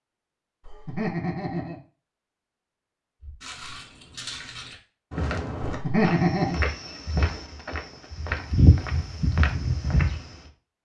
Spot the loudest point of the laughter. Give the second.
6 s.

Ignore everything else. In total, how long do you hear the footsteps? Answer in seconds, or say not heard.
7 s.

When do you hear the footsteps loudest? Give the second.
9 s.